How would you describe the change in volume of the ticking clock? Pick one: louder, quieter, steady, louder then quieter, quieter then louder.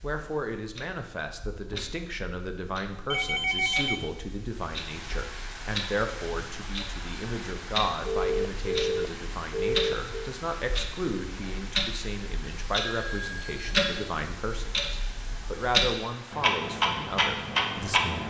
louder.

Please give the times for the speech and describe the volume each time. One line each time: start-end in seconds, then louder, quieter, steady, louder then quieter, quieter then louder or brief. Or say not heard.
0.0-18.2 steady.